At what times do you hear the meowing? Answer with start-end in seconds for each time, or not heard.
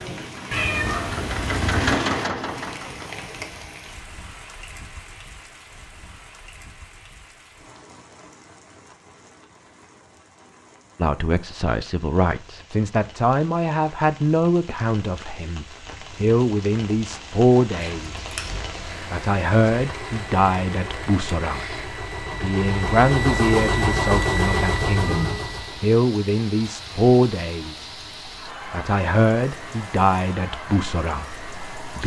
0.5-2.0, 17.8-18.5, 24.9-25.4.